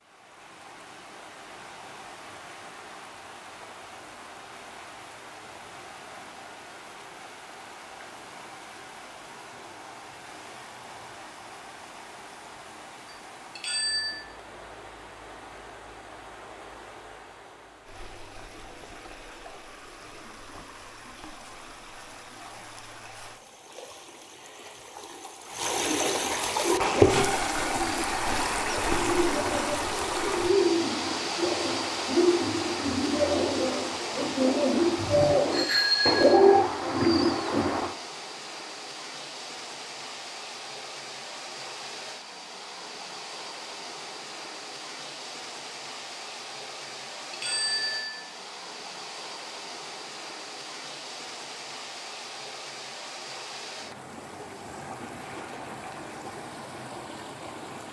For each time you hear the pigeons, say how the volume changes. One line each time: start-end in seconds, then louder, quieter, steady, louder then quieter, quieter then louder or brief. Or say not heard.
26.8-37.9 louder.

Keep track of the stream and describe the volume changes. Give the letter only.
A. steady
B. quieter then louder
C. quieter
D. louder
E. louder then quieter
E.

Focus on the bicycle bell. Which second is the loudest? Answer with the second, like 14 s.
36 s.